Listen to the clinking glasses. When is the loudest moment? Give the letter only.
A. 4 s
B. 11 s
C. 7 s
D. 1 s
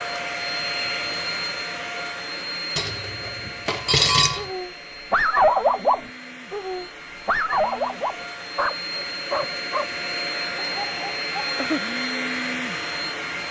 A.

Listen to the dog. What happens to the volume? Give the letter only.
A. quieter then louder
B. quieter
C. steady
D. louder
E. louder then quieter
B.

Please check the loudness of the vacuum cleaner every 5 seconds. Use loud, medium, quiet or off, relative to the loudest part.
loud, medium, loud.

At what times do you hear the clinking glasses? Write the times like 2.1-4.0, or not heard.
2.8-4.5.